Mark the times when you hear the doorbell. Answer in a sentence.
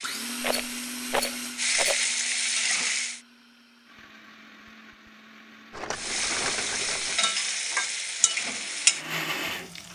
The doorbell can't be heard in this clip.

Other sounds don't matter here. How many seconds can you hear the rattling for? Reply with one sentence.
You can hear the rattling for 3 seconds altogether.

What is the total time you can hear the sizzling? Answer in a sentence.
You can hear the sizzling for 7 seconds altogether.